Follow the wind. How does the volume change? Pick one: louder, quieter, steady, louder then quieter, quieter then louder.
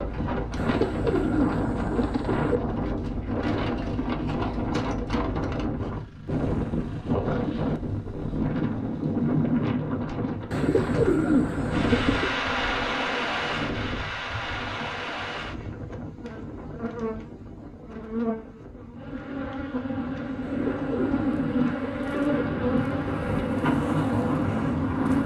quieter then louder.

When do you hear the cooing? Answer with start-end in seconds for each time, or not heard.
0.6-2.6, 10.5-12.4, 20.4-22.4.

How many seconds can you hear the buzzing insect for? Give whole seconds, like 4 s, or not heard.
14 s.